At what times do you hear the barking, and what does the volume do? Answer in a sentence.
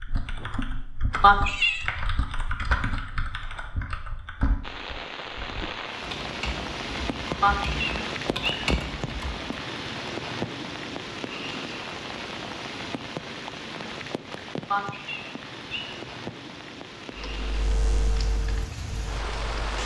You can't hear the barking here.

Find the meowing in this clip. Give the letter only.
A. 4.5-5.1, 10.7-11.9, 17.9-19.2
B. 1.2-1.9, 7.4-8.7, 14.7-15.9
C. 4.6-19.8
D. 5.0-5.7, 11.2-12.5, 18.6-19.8
B.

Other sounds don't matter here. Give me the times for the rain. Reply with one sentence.
The rain can be heard from 4.6 to 19.8 s.